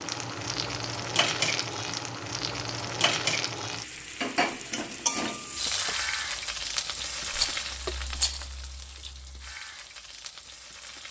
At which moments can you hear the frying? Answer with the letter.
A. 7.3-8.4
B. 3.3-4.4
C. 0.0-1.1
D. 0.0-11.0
D.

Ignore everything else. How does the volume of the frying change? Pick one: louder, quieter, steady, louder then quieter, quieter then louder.
quieter.